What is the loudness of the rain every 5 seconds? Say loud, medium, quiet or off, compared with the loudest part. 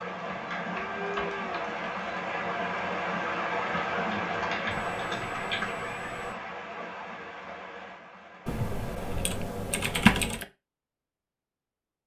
loud, medium, off.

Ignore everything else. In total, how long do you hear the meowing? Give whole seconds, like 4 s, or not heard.
3 s.